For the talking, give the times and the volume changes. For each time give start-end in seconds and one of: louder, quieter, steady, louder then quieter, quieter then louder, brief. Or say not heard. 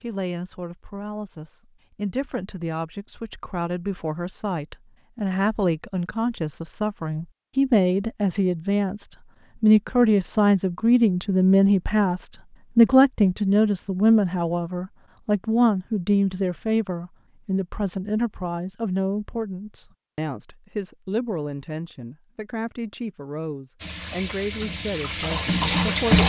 0.0-26.2 louder then quieter.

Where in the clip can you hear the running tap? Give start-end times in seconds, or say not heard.
23.8-26.2.